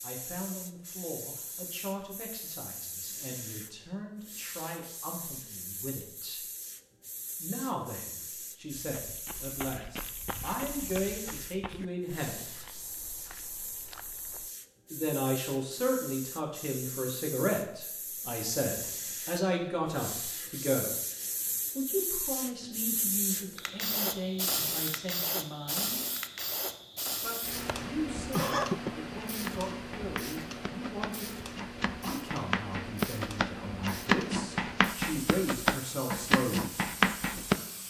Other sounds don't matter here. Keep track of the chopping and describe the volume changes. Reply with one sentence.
The volume of the chopping goes up.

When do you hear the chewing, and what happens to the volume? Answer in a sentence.
The chewing can't be heard in this clip.